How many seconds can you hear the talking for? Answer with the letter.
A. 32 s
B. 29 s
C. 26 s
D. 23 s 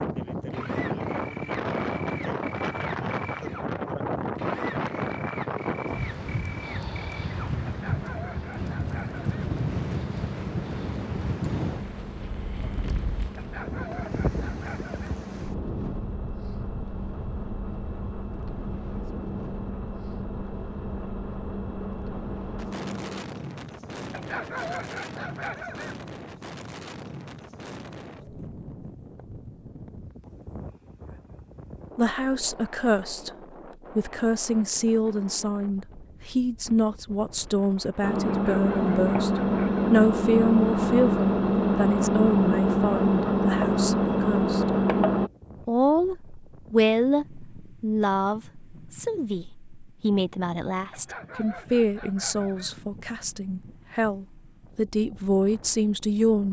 D.